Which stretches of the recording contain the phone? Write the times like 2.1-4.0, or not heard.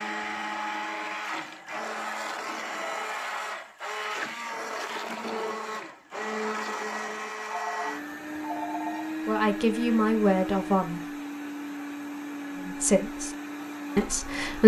7.5-9.2.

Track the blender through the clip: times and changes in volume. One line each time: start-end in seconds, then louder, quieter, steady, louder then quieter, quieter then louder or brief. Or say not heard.
0.0-14.6 steady.